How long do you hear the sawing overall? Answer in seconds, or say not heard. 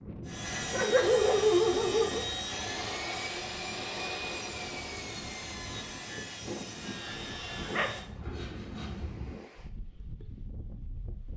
9 s.